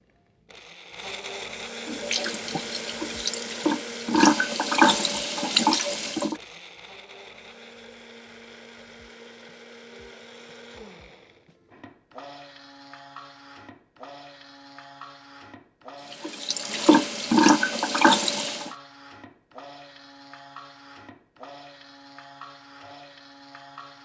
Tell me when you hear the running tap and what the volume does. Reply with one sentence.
You can hear the running tap from 1.9 to 6.3 s, getting louder; and briefly from 16.1 to 18.7 s.